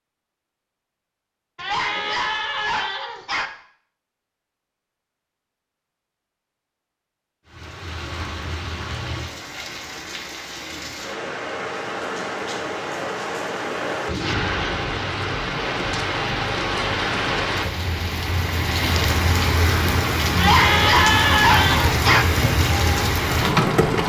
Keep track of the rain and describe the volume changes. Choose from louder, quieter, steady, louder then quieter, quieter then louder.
louder.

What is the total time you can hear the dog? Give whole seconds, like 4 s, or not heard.
4 s.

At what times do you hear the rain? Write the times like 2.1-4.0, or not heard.
7.5-24.0.